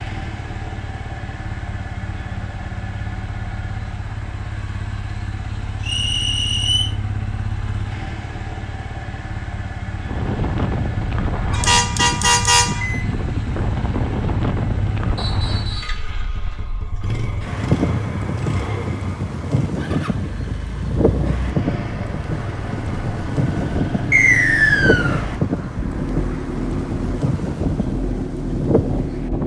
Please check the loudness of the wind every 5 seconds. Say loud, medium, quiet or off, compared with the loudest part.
off, off, loud, loud, loud, loud.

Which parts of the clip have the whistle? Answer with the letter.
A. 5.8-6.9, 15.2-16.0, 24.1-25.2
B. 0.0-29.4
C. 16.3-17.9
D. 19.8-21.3
A.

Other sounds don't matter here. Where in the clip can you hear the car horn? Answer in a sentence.
The car horn can be heard from 11.5 to 13.1 s.